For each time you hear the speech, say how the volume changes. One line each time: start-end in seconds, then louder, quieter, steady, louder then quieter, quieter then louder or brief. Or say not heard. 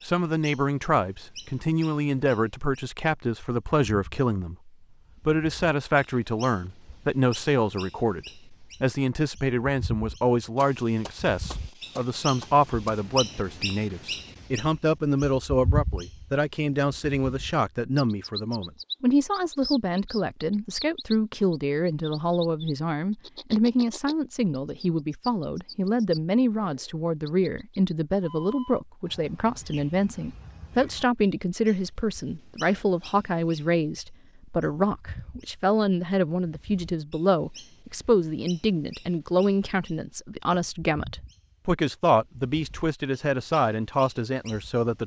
0.0-45.0 steady.